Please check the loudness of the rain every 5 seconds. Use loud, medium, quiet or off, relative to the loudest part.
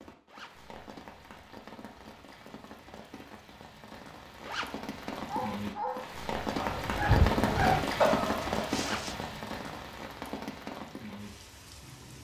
quiet, loud, medium.